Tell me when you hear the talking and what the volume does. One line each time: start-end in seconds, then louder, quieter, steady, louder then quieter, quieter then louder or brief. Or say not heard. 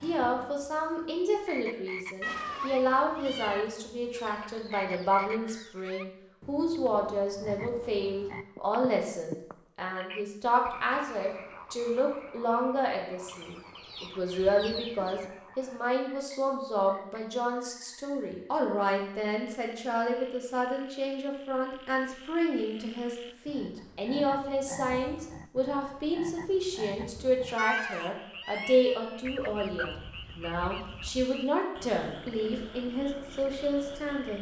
0.0-34.3 steady.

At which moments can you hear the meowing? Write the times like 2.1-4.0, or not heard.
2.2-3.6, 27.6-29.2.